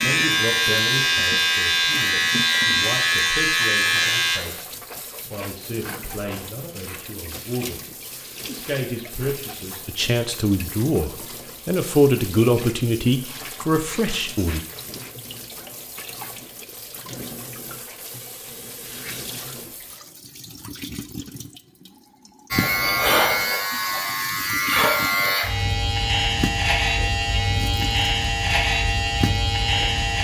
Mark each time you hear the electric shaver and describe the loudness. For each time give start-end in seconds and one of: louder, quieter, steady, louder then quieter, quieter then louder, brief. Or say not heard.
0.0-4.4 steady
22.5-30.1 steady.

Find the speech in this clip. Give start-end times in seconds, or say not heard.
0.0-4.7, 5.3-7.8, 8.4-14.6.